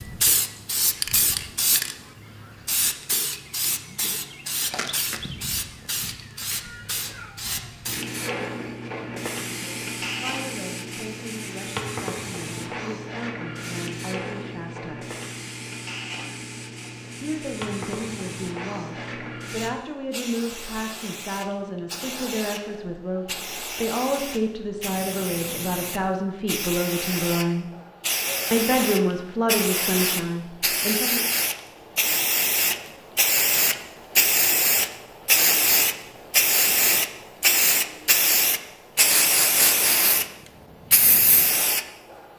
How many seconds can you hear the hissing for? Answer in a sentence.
You can hear the hissing for 42 seconds altogether.